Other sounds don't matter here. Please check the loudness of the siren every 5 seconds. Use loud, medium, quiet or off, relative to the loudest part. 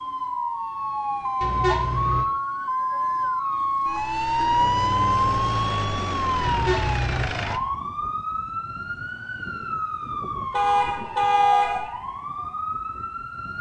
loud, loud, medium.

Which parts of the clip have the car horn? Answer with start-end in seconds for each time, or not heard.
1.4-2.2, 6.4-7.3, 10.5-11.9.